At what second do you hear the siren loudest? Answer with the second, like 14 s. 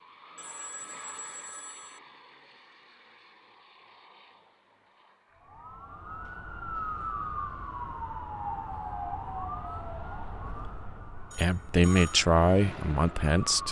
7 s.